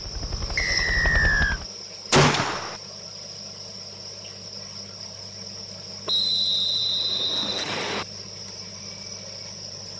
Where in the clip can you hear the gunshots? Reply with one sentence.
You can hear the gunshots from 2.1 to 2.8 s.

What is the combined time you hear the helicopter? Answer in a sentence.
You can hear the helicopter for 2 seconds altogether.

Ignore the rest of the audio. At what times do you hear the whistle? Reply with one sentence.
You can hear the whistle from 0.6 to 1.6 s and from 6.0 to 8.1 s.